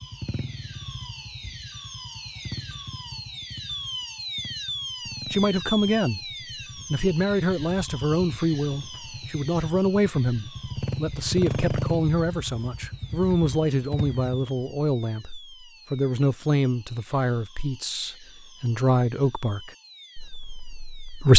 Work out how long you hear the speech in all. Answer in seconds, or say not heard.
15 s.